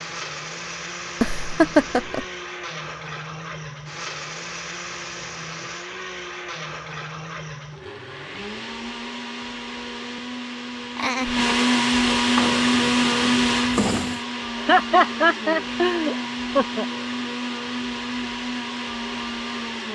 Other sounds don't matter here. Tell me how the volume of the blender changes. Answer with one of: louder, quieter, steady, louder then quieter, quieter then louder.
louder then quieter.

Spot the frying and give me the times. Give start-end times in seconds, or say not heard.
12.2-14.2.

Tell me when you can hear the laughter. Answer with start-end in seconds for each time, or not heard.
1.2-2.2, 10.9-11.4, 14.6-16.9.